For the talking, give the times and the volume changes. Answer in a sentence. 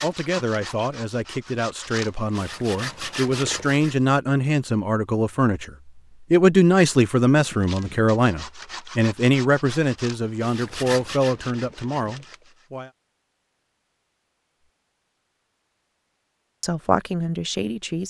The talking can be heard from 0.0 to 12.9 s, getting louder then quieter; and briefly from 16.6 to 18.0 s.